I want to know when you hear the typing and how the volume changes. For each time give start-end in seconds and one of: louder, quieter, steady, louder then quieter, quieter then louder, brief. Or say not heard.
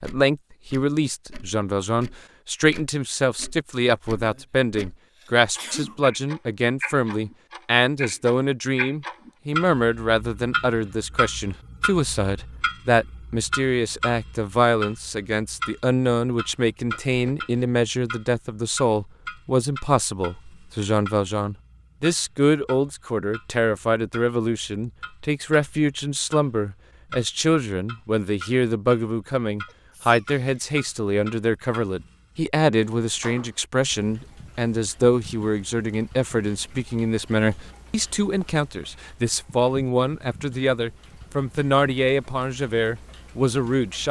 not heard.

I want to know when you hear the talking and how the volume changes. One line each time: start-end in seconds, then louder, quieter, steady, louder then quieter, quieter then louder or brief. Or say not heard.
0.0-44.0 steady.